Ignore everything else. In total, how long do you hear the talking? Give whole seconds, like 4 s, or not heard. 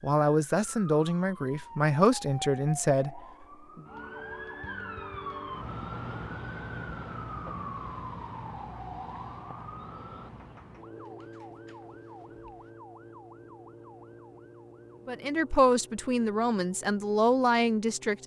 7 s.